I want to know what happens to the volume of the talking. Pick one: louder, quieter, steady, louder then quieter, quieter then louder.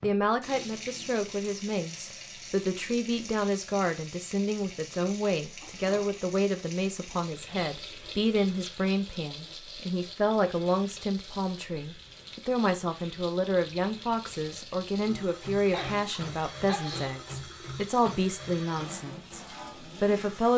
steady.